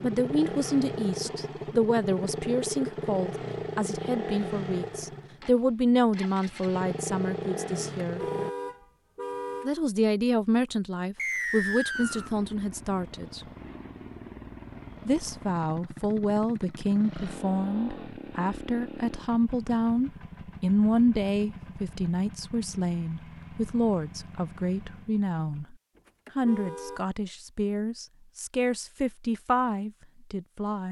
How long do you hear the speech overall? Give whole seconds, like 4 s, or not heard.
27 s.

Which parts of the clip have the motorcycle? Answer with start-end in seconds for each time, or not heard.
0.0-8.5, 11.9-25.7.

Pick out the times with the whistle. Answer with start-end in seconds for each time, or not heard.
11.2-12.3.